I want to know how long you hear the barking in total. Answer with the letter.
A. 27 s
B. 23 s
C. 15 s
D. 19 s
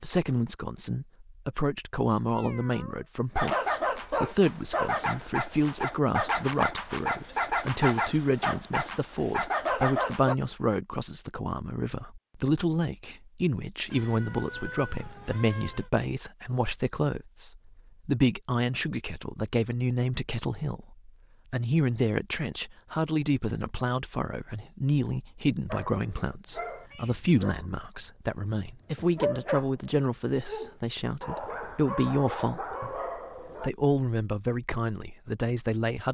C.